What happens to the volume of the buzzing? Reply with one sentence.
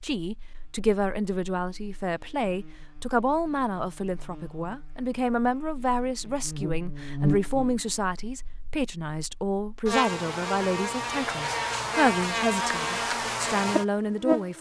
The volume of the buzzing goes up.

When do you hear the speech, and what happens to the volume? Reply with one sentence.
The speech can be heard from 0.0 to 14.5 s, at a steady volume.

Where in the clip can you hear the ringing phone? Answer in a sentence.
The ringing phone can't be heard in this clip.